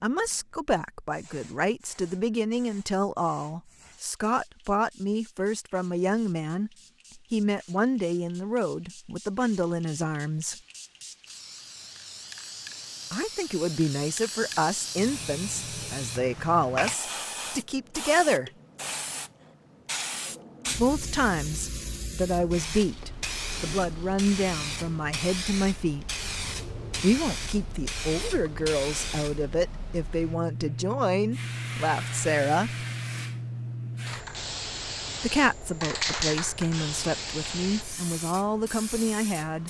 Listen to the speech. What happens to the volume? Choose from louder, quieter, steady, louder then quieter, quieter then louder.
steady.